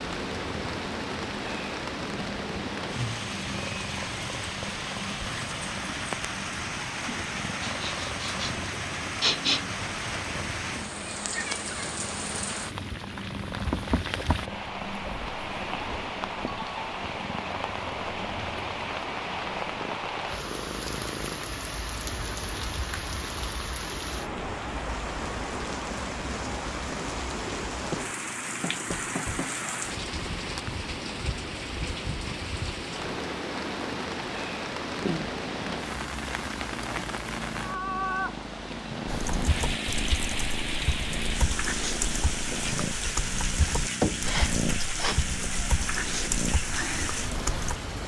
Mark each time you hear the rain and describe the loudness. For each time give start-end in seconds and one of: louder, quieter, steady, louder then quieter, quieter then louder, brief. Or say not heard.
0.0-48.0 steady.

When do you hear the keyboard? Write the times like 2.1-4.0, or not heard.
39.0-47.8.